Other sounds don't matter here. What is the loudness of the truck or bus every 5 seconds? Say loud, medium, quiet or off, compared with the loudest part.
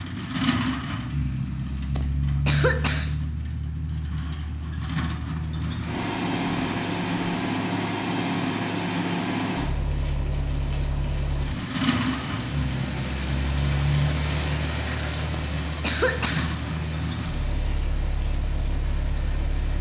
loud, loud, loud, medium.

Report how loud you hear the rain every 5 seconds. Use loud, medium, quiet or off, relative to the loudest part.
off, medium, loud, loud.